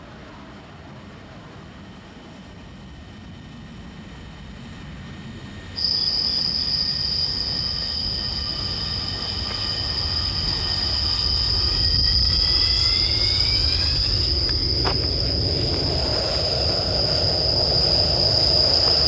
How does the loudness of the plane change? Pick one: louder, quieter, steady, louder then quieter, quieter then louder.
louder.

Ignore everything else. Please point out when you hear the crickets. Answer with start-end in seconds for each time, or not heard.
5.8-19.0.